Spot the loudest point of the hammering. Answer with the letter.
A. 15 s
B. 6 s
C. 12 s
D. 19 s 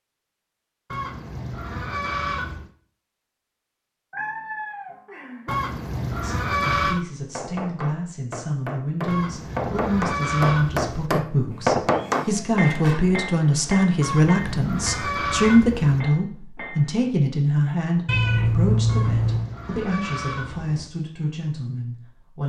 C.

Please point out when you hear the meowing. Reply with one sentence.
You can hear the meowing from 4.1 to 5.5 s, from 11.5 to 13.1 s and from 18.1 to 19.5 s.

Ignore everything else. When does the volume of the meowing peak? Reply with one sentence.
The volume of the meowing peaks at 19 seconds.